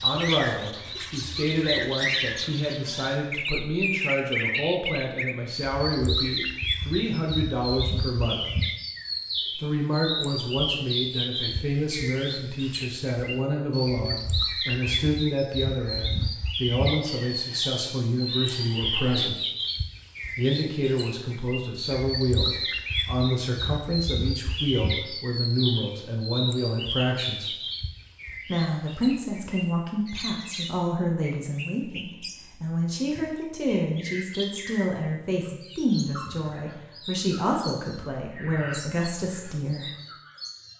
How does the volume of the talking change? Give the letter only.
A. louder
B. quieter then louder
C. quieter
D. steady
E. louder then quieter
D.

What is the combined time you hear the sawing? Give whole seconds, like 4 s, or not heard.
not heard.